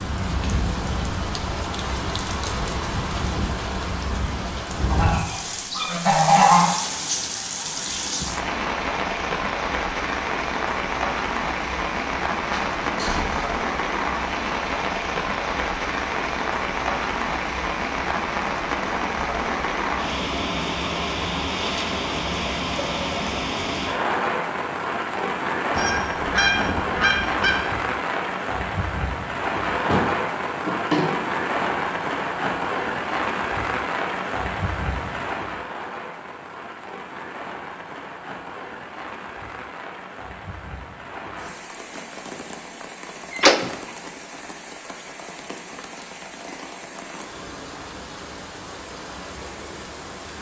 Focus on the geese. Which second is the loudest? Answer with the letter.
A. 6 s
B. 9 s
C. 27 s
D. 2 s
A.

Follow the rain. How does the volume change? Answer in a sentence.
The loudness of the rain goes down.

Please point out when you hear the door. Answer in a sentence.
You can hear the door from 12.7 to 13.4 s, from 29.9 to 31.3 s and from 43.3 to 43.7 s.